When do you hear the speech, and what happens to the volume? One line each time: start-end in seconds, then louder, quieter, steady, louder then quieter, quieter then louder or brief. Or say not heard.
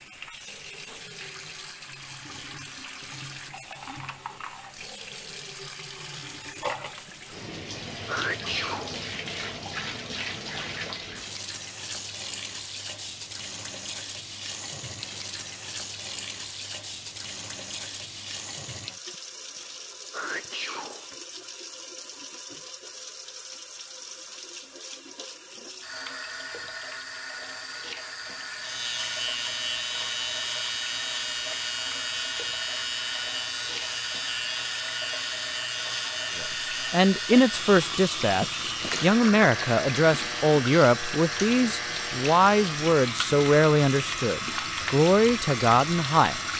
36.4-46.5 steady.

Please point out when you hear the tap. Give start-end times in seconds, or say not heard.
0.0-46.5.